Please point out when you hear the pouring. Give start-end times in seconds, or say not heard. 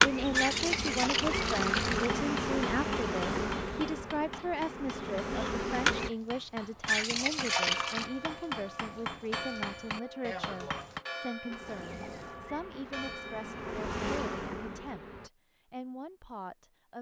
0.3-2.1, 6.8-8.1, 11.7-12.4.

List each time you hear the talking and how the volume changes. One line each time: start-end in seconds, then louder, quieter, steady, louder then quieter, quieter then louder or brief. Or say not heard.
0.0-16.9 quieter.